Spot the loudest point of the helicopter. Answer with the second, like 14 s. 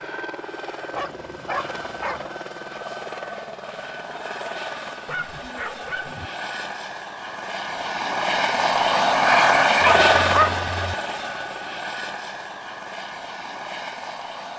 10 s.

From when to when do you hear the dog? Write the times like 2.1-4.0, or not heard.
0.9-2.2, 5.0-6.3, 9.8-10.7.